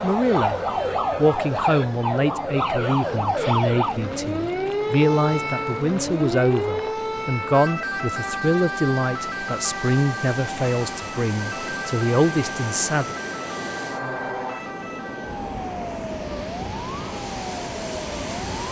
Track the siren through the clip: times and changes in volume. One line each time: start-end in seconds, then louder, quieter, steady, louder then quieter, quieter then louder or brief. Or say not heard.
0.0-18.6 quieter.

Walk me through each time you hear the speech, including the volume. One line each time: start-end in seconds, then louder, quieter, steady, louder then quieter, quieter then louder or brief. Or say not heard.
0.0-13.2 steady.